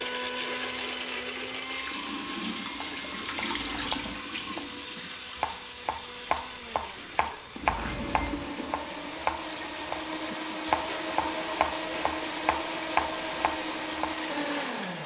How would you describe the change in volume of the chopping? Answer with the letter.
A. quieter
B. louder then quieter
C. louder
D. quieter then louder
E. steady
C.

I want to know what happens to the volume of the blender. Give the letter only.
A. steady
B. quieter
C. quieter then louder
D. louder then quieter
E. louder
C.